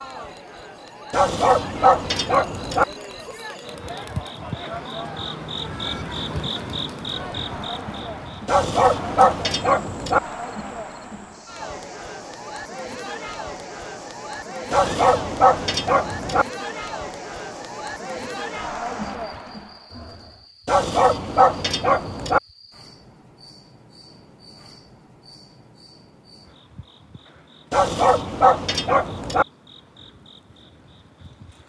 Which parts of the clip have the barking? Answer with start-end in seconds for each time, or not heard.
1.1-2.9, 8.4-10.2, 14.7-16.4, 20.6-22.4, 27.7-29.4.